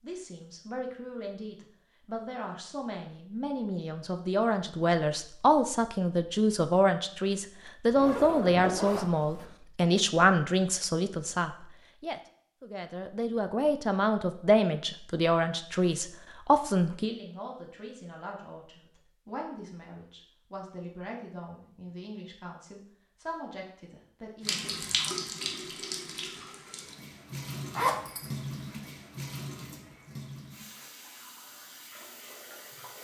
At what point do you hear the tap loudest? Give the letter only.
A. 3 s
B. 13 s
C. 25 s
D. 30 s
C.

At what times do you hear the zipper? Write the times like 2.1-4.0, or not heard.
7.9-9.4, 27.8-28.3.